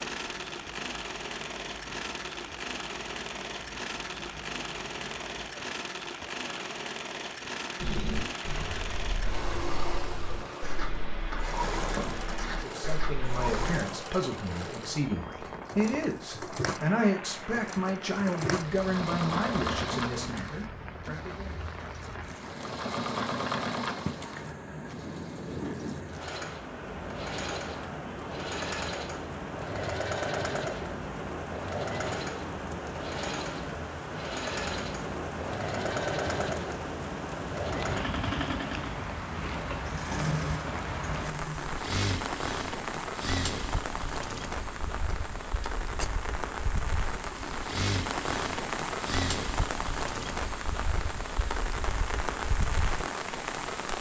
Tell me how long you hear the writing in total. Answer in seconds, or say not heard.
6 s.